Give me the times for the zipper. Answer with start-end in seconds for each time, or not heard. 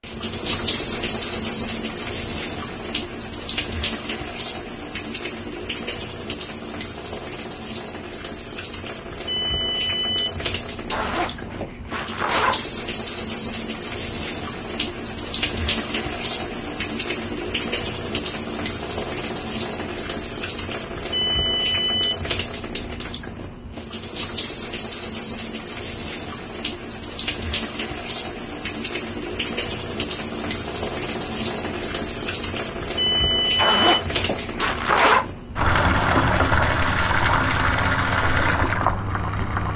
10.9-12.7, 33.5-35.2.